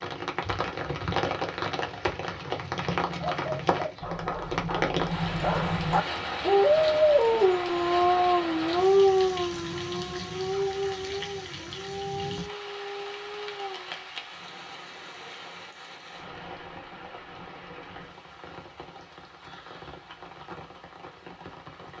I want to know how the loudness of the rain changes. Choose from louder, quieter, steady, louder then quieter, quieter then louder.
quieter.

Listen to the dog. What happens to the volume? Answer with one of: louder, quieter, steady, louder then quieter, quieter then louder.
louder then quieter.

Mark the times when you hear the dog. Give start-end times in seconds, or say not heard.
3.2-13.9.